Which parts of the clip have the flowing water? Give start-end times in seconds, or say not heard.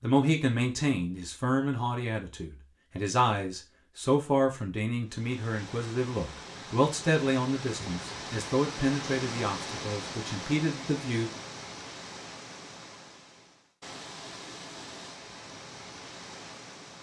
5.0-16.9.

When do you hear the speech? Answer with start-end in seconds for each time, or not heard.
0.0-11.3.